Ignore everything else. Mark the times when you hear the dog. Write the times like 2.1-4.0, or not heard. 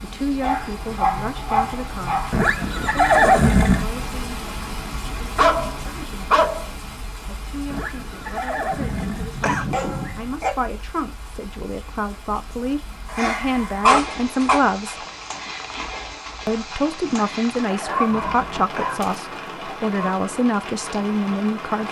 0.4-2.4, 5.3-6.7, 8.7-10.5, 13.1-14.6, 17.9-20.1.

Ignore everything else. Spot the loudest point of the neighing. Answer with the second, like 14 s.
3 s.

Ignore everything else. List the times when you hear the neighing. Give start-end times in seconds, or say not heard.
2.3-3.9, 7.7-9.7, 17.0-19.0.